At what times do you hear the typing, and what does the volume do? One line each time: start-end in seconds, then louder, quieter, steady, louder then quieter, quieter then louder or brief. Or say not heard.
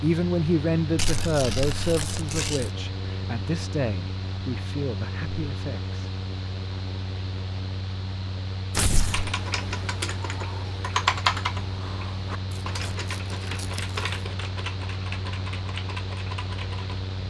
8.9-17.0 louder then quieter.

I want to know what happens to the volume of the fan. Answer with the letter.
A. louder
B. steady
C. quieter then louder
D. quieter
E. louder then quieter
B.